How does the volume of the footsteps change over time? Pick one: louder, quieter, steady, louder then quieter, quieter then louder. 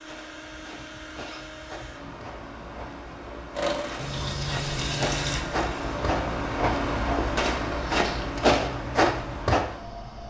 louder.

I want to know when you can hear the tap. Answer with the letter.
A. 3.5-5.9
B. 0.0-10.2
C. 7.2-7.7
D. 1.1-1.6
A.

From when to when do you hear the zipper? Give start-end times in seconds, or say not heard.
1.1-1.6.